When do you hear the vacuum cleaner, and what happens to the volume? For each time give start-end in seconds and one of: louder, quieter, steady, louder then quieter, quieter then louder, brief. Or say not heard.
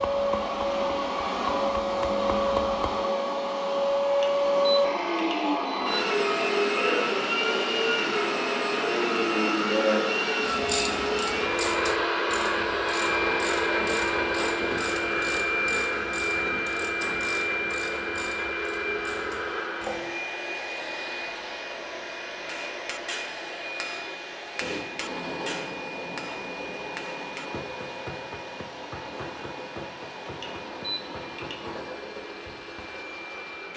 0.0-33.7 quieter.